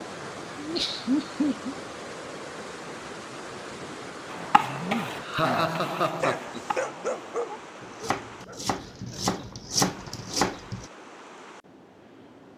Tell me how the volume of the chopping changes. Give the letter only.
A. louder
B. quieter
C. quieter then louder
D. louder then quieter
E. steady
C.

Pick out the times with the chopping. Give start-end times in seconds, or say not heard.
4.3-10.8.